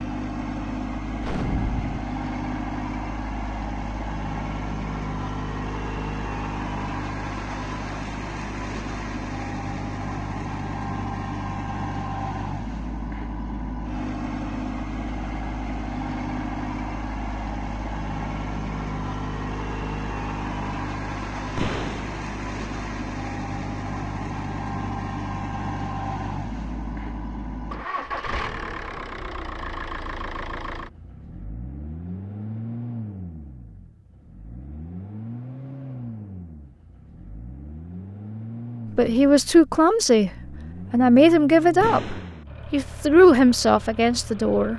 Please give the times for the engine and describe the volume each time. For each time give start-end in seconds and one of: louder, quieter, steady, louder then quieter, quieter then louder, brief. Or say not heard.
0.0-44.7 quieter.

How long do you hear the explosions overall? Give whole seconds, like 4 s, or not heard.
2 s.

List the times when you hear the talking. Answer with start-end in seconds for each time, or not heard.
39.0-40.3, 40.9-44.7.